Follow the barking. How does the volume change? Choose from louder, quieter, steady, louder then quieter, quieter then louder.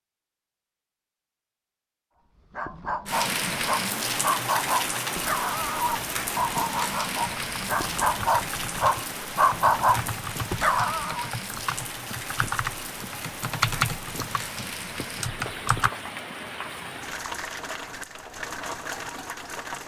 louder.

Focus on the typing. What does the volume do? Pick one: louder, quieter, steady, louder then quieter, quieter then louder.
louder then quieter.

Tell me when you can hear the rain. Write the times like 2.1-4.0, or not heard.
3.0-19.8.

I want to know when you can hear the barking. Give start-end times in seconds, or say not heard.
2.5-11.3.